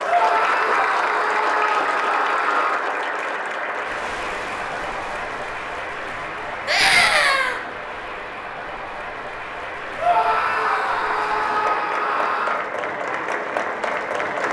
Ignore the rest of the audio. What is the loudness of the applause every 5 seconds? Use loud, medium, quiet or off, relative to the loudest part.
loud, medium, loud.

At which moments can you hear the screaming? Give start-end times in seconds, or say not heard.
0.0-2.8, 6.7-7.6, 9.9-12.7.